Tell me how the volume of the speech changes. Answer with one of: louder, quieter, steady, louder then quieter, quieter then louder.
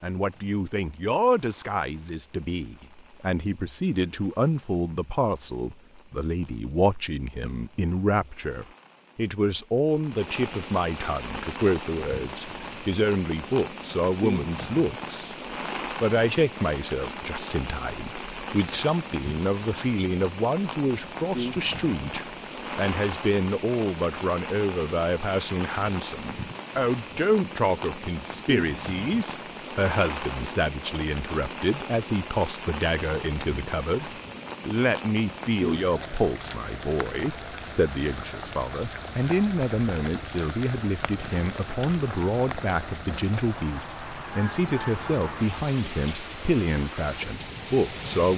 steady.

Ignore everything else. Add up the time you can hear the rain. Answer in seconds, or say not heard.
48 s.